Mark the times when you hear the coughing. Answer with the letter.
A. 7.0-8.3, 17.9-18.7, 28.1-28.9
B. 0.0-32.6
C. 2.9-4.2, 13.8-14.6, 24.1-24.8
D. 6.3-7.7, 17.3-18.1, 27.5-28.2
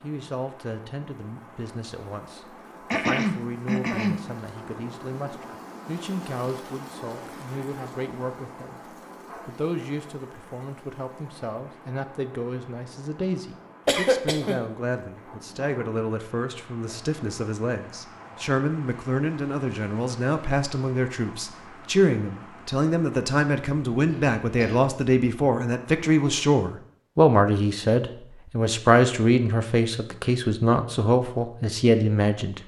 C.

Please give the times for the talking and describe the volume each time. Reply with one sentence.
You can hear the talking from 0.0 to 32.6 s, getting louder.